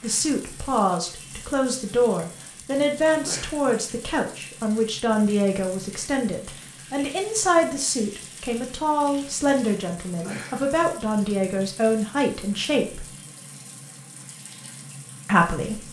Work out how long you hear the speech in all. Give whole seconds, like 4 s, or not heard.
14 s.